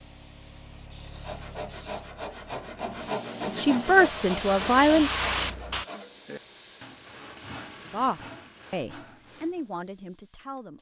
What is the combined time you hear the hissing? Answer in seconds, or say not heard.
11 s.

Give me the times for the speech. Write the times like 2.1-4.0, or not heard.
3.5-5.1, 7.9-10.7.